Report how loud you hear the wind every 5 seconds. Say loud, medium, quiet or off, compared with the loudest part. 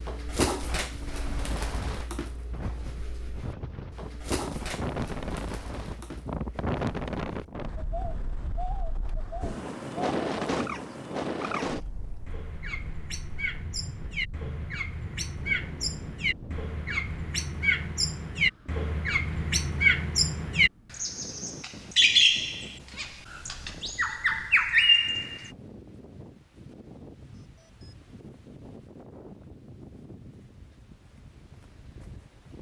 medium, loud, loud, medium, quiet, quiet, quiet.